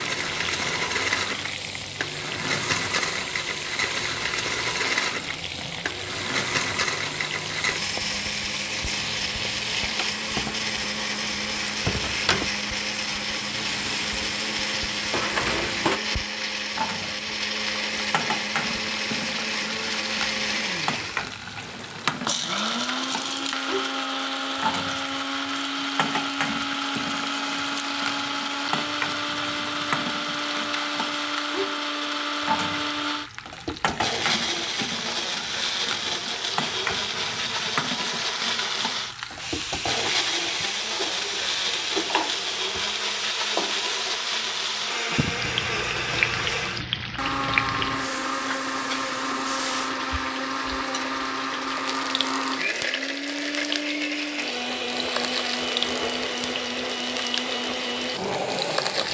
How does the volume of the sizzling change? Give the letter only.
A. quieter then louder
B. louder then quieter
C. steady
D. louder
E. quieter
C.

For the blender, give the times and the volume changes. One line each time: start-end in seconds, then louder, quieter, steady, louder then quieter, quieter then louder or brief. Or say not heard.
0.0-59.0 steady.